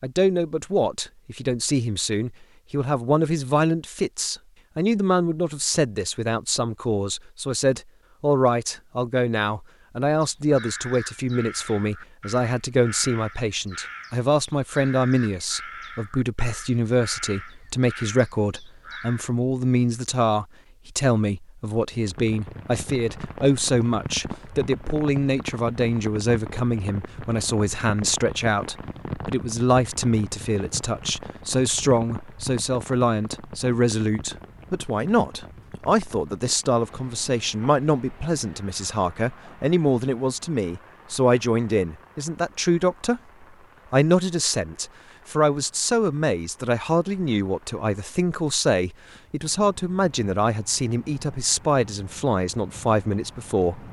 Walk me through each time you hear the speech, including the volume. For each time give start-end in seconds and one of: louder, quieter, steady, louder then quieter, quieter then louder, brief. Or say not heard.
0.0-43.2 steady
43.9-53.8 steady.